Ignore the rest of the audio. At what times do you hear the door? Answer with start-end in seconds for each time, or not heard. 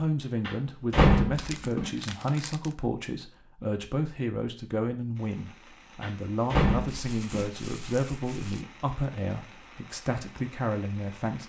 0.5-1.9, 6.0-7.5.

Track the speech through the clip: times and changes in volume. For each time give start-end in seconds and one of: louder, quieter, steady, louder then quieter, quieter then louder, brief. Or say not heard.
0.0-11.4 steady.